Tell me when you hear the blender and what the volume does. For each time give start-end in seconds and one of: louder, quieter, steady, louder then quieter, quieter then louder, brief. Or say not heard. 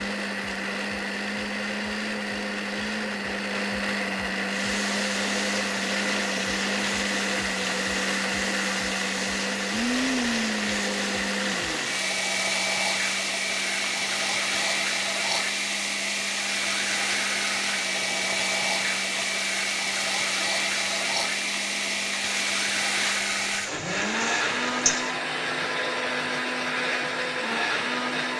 0.0-28.3 steady.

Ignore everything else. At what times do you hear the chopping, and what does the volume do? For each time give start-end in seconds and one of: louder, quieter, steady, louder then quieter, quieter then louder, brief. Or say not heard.
not heard.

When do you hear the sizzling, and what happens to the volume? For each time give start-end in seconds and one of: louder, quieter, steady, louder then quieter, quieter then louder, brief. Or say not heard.
4.4-25.2 steady.